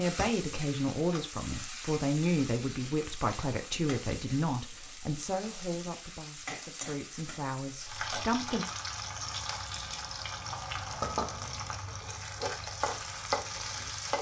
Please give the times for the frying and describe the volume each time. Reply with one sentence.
You can hear the frying from 0.0 to 14.1 s, getting louder.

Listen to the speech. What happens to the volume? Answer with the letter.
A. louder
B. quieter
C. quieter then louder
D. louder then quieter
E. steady
B.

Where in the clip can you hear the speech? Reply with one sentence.
You can hear the speech from 0.0 to 8.7 s.